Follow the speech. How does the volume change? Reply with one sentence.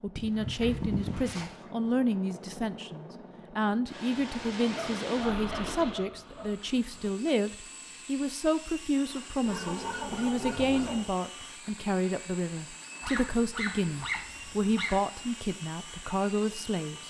The volume of the speech stays about the same.